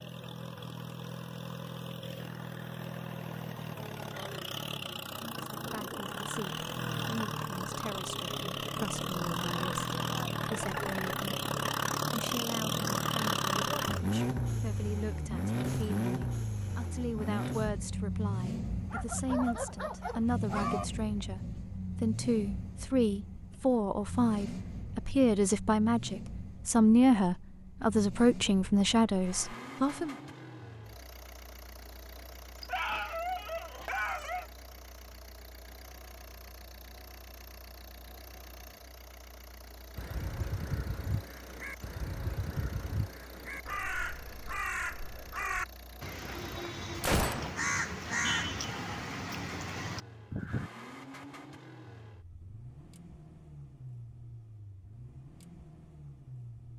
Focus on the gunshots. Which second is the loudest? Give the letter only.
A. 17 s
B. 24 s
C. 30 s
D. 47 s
D.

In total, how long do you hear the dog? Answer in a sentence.
You can hear the dog for 4 seconds altogether.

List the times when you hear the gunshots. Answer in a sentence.
The gunshots can be heard from 15.6 to 16.1 s and from 47.0 to 47.6 s.